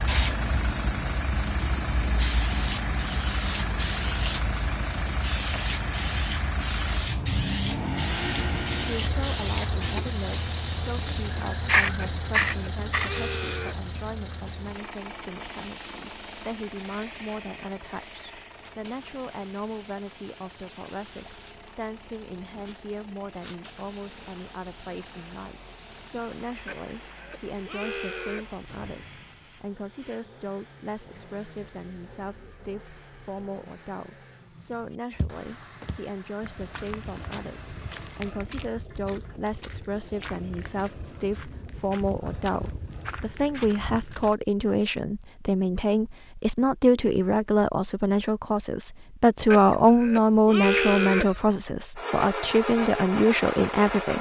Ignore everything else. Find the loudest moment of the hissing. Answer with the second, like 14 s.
12 s.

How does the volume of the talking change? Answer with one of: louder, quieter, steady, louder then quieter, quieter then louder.
louder.